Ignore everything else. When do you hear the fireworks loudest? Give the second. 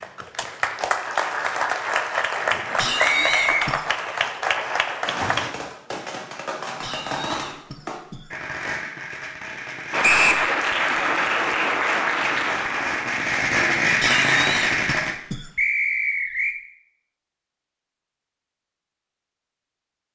14 s.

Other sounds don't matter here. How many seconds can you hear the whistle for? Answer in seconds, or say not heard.
2 s.